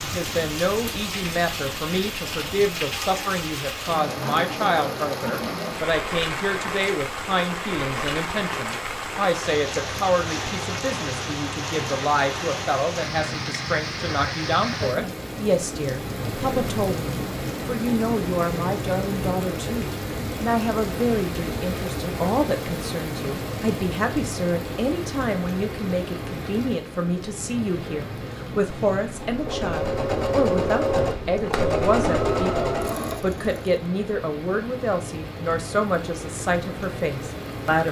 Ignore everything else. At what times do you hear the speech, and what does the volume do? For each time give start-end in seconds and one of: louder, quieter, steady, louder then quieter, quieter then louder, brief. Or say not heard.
0.0-37.8 steady.